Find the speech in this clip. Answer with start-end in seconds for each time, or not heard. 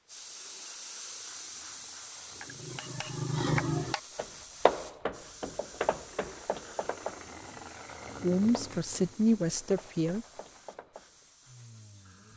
8.2-10.2.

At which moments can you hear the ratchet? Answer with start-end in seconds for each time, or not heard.
not heard.